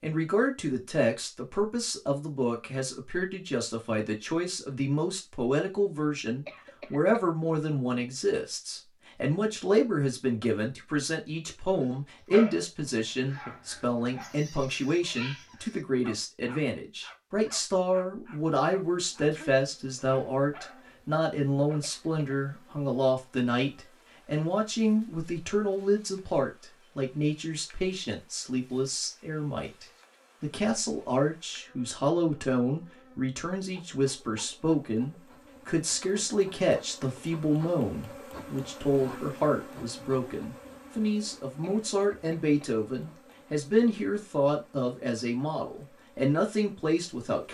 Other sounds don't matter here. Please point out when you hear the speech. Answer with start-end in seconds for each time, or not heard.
0.0-47.4.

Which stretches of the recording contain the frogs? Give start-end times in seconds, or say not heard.
not heard.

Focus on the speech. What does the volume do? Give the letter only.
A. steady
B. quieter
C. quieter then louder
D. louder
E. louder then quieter
A.